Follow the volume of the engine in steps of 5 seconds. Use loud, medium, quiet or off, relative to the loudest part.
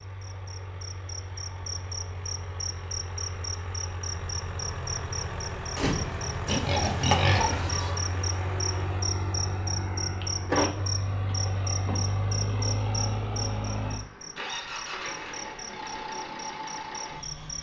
medium, loud, loud, loud.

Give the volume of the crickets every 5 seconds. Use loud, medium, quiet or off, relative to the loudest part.
loud, loud, loud, medium.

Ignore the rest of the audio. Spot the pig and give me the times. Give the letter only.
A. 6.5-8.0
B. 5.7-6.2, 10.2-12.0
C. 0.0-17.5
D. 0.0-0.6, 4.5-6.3
A.